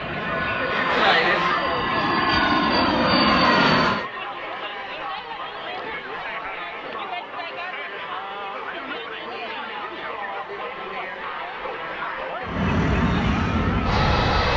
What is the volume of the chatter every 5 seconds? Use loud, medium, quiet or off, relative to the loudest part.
loud, medium, medium.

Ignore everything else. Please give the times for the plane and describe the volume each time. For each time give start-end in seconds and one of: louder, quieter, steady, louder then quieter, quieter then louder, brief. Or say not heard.
0.0-4.0 louder
12.4-14.5 brief.